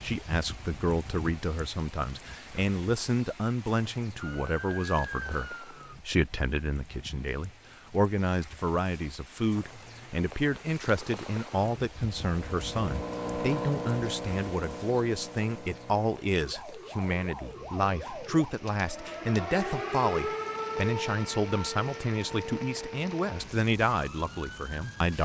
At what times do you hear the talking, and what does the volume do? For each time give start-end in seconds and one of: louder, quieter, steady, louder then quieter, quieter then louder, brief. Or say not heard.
0.0-25.1 steady.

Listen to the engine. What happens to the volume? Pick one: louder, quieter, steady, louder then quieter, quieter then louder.
louder then quieter.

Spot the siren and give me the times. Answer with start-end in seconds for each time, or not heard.
4.2-6.0, 16.4-25.1.